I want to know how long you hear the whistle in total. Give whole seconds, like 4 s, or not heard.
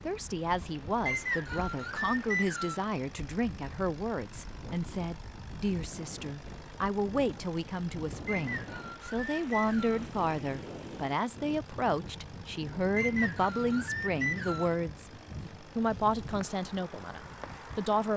5 s.